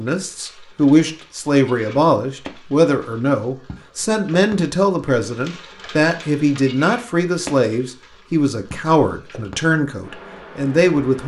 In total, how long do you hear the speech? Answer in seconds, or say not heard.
11 s.